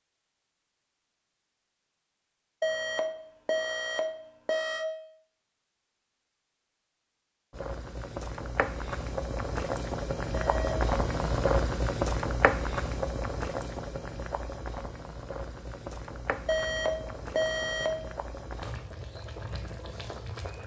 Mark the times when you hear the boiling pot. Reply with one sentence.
The boiling pot can be heard from 7.5 to 20.6 s.